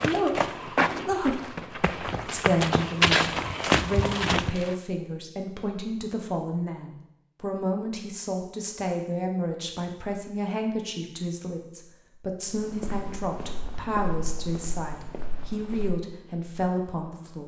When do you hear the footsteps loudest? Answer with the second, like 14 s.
3 s.